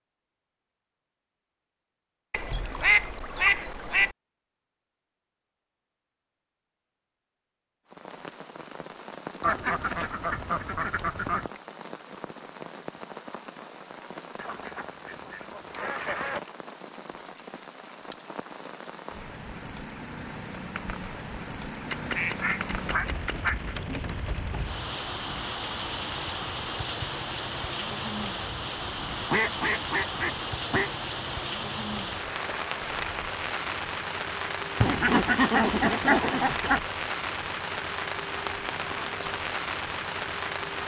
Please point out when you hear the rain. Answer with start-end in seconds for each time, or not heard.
7.8-40.8.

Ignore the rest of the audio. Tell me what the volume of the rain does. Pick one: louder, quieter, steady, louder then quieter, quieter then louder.
louder.